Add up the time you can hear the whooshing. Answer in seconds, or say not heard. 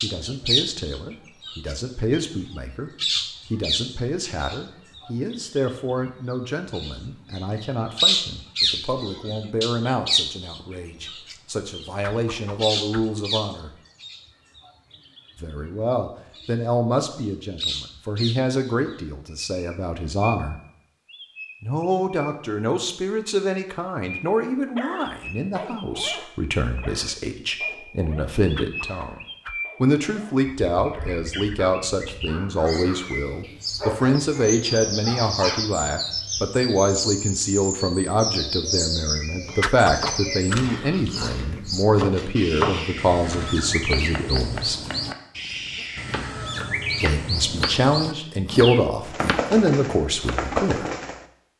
3 s.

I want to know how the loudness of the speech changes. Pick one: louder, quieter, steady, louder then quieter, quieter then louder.
louder.